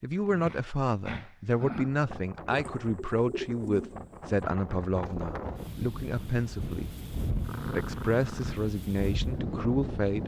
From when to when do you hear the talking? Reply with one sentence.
You can hear the talking from 0.0 to 7.0 s and from 7.7 to 10.2 s.